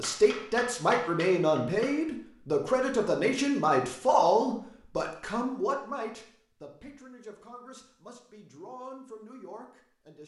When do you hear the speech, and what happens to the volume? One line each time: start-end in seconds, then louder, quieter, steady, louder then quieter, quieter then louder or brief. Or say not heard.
0.0-10.2 quieter.